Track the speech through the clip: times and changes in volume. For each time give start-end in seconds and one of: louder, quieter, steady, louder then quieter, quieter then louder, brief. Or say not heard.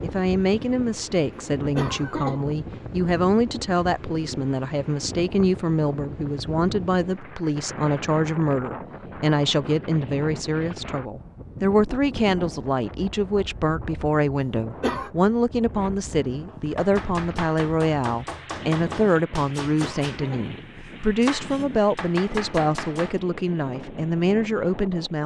0.0-25.2 steady.